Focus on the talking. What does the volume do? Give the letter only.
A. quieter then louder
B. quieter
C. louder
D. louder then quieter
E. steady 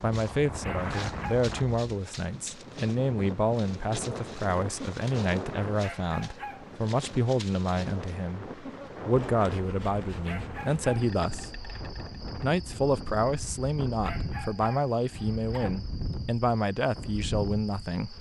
E.